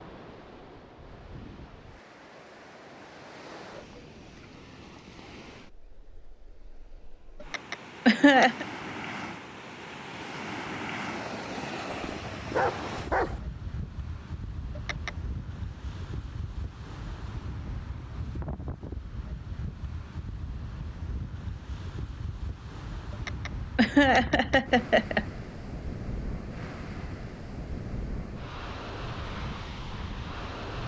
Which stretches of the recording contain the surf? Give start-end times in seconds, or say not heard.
0.0-30.8.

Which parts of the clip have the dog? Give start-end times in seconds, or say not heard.
11.9-13.4.